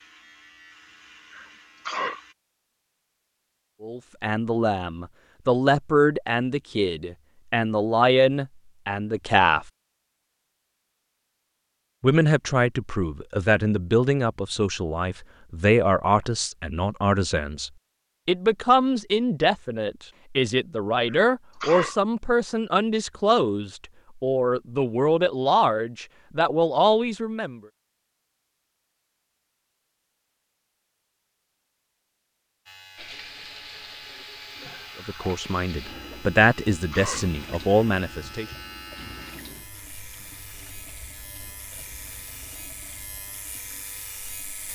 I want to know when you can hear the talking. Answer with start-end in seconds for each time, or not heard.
3.8-9.7, 12.0-27.6, 35.0-38.5.